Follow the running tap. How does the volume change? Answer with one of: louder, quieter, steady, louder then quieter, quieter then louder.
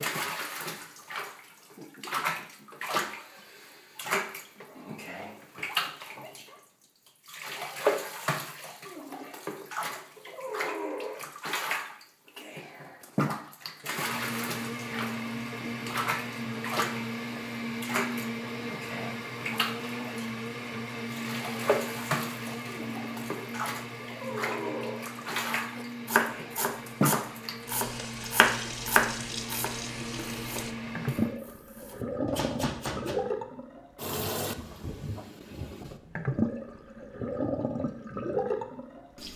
steady.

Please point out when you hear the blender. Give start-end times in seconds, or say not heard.
13.9-31.4.